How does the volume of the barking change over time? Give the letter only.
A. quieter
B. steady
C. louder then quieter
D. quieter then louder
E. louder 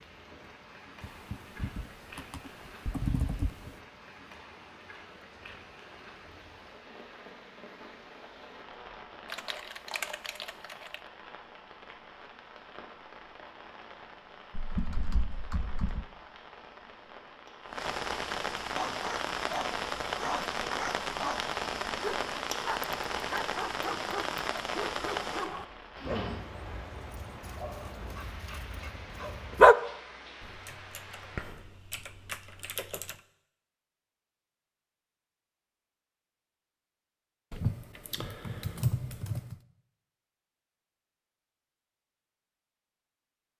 A.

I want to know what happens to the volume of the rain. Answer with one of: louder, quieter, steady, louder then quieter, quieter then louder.
louder then quieter.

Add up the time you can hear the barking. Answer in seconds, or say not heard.
11 s.